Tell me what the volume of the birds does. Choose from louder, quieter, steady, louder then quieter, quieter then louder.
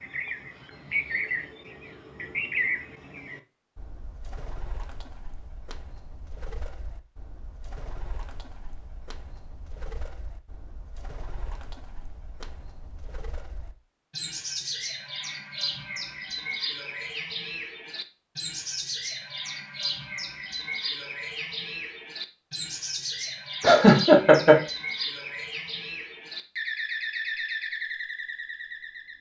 quieter then louder.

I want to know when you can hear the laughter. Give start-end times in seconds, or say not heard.
23.6-24.6.